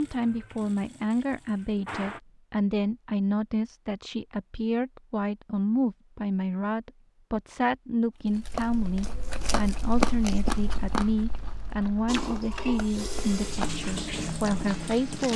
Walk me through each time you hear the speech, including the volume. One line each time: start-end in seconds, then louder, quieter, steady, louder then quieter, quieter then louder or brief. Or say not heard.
0.0-15.3 steady.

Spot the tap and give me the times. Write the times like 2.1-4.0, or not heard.
0.0-2.2, 12.1-15.3.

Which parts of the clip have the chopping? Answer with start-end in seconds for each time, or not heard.
not heard.